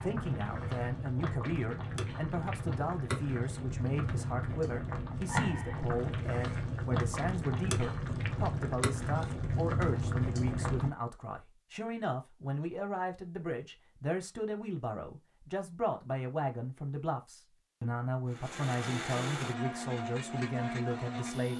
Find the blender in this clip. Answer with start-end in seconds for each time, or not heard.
18.3-21.5.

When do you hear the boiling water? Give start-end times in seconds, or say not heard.
0.0-10.9.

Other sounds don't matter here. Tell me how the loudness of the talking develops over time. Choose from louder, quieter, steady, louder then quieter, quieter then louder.
steady.